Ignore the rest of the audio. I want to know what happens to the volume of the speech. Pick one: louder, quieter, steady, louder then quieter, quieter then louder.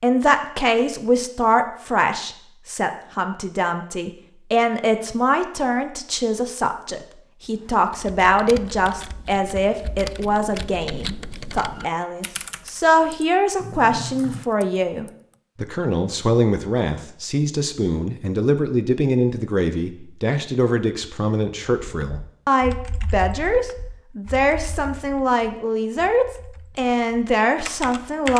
steady.